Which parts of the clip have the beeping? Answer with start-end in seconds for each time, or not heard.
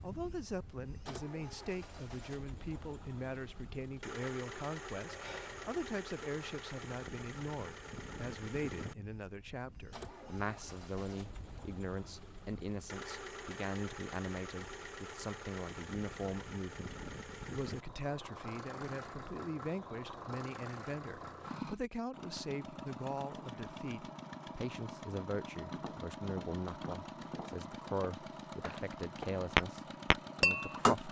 5.0-5.7.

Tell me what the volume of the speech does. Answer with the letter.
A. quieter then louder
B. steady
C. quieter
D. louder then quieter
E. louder
B.